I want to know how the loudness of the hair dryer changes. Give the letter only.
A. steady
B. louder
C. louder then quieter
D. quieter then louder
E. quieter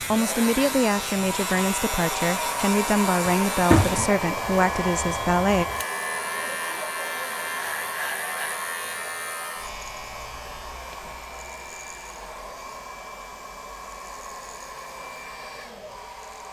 E.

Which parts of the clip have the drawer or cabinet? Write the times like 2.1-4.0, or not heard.
3.2-4.1.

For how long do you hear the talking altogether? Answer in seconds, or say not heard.
6 s.